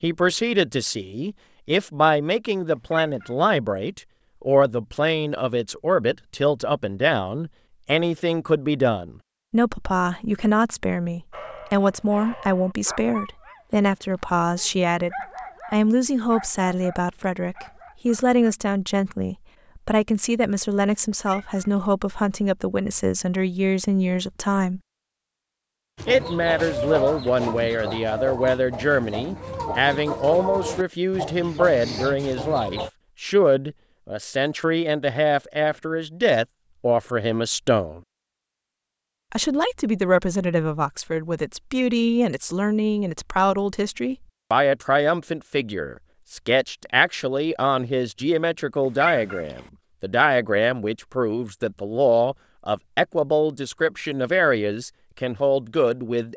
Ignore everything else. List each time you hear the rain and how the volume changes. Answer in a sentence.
The rain can't be heard in this clip.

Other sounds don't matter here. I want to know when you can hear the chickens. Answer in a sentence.
You can hear the chickens from 25.9 to 32.9 s.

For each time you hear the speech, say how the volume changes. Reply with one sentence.
The speech can be heard from 0.0 to 24.8 s, at a steady volume; from 26.1 to 38.0 s, at a steady volume; and from 39.3 to 56.3 s, at a steady volume.